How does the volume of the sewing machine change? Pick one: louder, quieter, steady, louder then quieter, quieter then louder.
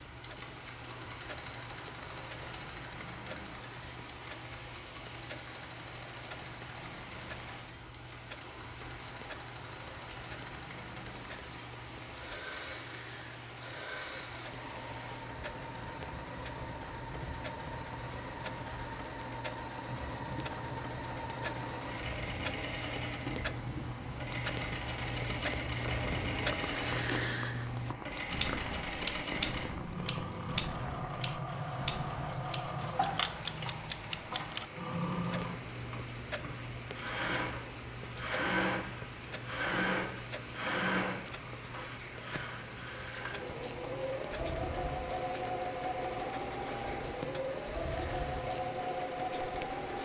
louder.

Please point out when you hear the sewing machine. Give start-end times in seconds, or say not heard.
0.0-50.0.